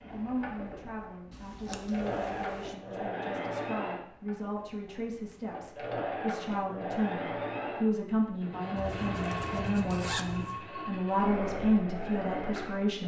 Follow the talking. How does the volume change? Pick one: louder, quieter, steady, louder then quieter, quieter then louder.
louder.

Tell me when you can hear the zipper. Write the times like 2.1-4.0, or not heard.
8.8-10.7.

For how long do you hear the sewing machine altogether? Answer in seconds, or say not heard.
13 s.